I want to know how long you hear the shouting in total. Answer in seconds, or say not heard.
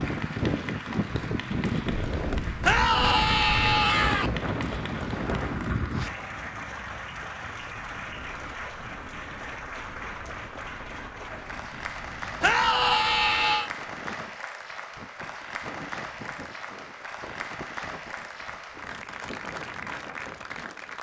3 s.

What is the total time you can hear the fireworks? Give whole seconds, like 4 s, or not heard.
not heard.